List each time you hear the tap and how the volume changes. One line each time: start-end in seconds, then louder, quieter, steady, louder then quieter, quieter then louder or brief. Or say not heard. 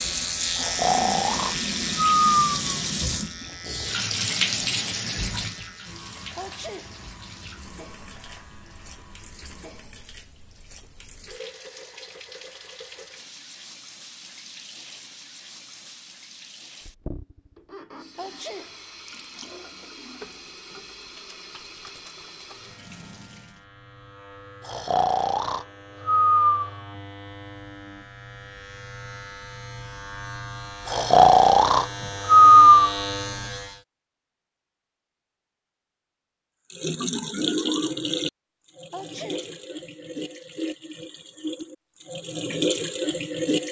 0.0-23.6 quieter
36.7-43.6 quieter then louder.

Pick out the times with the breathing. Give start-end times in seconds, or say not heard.
0.6-2.8, 24.6-26.8, 30.9-33.0.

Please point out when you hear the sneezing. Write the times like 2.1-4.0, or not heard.
6.3-7.0, 18.1-18.9, 38.9-39.6.